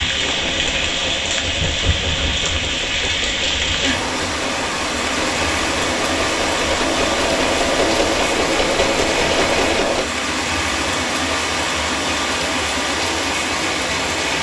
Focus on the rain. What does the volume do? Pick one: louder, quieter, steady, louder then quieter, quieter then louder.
steady.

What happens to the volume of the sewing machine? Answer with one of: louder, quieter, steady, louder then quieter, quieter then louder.
louder.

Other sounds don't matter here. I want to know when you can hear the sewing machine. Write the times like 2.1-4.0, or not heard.
0.0-10.1.